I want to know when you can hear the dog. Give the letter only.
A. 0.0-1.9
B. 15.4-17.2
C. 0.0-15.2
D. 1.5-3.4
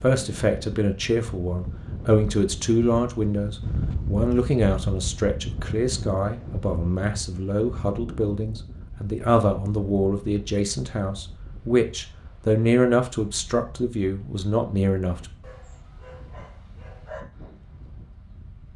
B.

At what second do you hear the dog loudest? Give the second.
17 s.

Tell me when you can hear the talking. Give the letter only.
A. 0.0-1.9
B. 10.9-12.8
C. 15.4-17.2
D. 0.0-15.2
D.